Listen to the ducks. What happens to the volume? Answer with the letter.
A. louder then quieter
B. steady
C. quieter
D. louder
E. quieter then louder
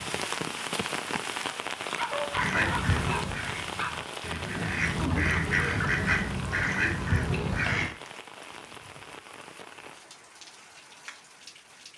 E.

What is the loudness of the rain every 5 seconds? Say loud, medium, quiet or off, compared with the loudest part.
loud, medium, quiet.